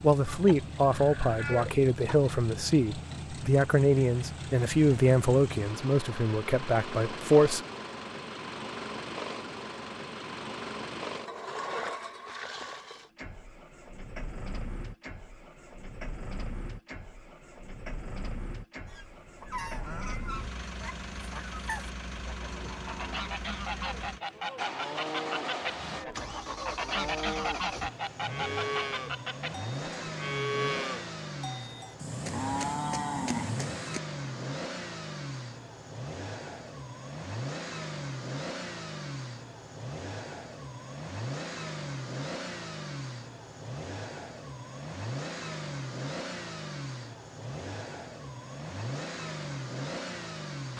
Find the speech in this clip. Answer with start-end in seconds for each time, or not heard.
0.0-7.6.